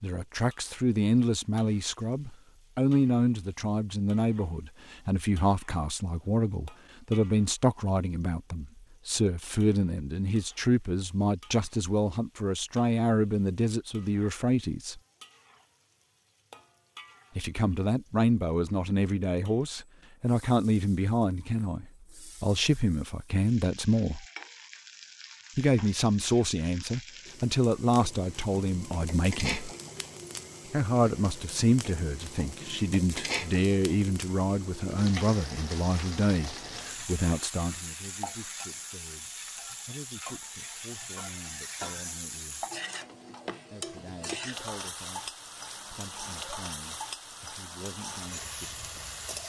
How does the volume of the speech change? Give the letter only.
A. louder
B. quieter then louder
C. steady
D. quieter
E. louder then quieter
D.